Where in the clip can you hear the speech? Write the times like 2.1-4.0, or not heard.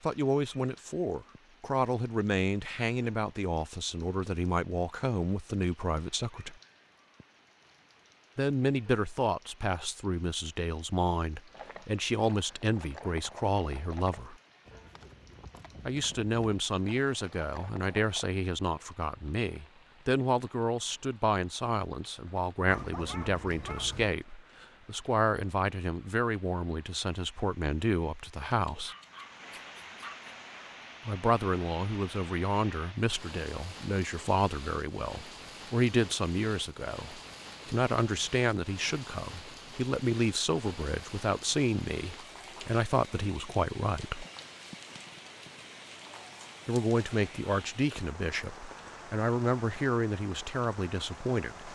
0.0-6.5, 8.3-14.3, 15.8-28.9, 31.1-44.2, 46.6-51.7.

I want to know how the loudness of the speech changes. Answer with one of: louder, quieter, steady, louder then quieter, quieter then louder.
steady.